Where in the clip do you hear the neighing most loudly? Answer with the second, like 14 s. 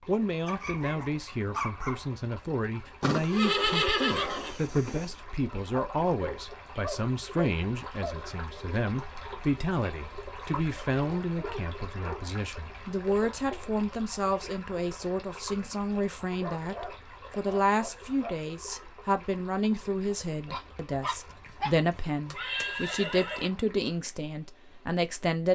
4 s.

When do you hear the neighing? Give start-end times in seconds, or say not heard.
3.0-5.1, 21.3-23.5.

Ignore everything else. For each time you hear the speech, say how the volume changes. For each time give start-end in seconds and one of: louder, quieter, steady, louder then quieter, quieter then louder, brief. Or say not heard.
0.1-25.4 steady.